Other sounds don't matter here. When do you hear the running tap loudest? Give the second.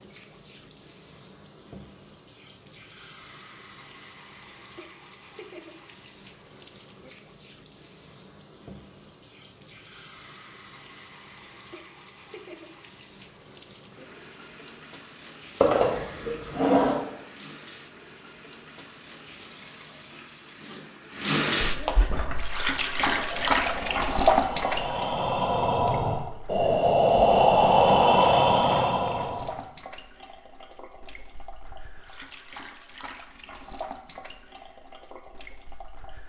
24 s.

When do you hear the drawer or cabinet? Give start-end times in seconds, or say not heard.
15.6-16.9.